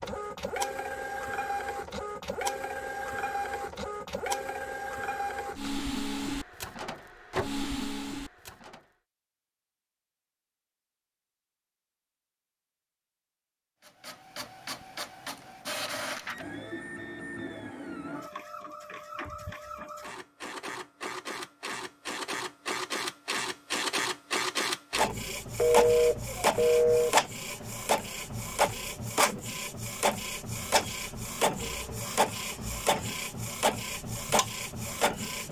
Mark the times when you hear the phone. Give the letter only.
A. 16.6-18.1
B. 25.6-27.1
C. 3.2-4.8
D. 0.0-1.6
B.